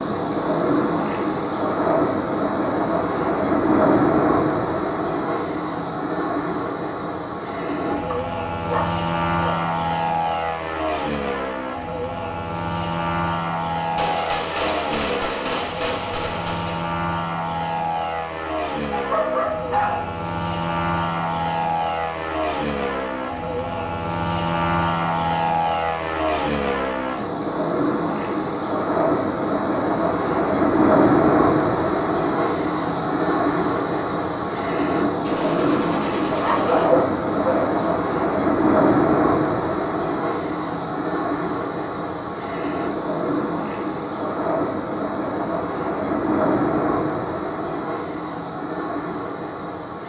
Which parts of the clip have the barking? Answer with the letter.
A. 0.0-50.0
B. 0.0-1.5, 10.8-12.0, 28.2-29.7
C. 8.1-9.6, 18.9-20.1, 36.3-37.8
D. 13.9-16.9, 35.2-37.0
C.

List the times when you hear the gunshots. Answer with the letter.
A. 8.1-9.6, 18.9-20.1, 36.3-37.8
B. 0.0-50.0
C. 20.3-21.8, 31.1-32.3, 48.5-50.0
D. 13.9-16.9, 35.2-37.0
D.